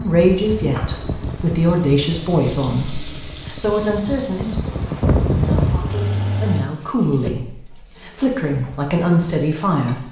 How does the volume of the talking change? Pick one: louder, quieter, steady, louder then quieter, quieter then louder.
quieter then louder.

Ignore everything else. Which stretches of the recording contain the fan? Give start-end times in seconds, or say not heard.
0.0-6.7.